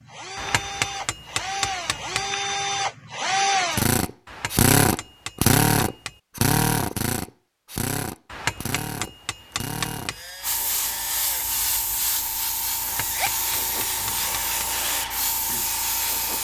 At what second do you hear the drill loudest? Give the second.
5 s.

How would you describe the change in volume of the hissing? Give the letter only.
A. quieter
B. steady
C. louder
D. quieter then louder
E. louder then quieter
B.